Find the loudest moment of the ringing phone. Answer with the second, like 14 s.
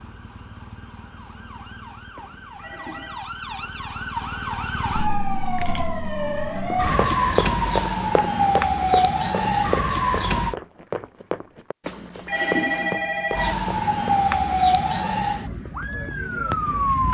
13 s.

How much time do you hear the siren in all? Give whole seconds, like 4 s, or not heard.
14 s.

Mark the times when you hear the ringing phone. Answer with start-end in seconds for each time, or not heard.
2.1-3.2, 11.8-13.6.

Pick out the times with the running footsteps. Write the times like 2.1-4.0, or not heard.
6.7-14.1.